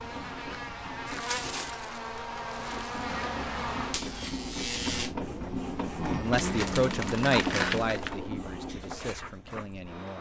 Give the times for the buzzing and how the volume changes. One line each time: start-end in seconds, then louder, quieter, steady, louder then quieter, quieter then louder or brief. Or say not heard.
0.0-7.8 steady.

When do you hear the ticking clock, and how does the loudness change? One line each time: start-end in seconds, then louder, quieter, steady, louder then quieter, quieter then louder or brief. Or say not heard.
not heard.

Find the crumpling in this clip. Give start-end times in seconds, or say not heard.
1.1-3.0, 6.3-8.2.